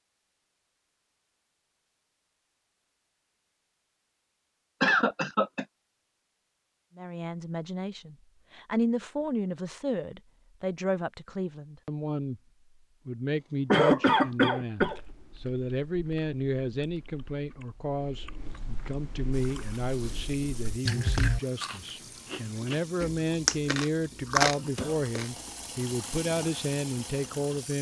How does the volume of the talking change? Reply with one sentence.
The loudness of the talking stays about the same.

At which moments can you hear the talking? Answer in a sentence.
The talking can be heard from 7.0 to 12.4 s and from 13.1 to 27.7 s.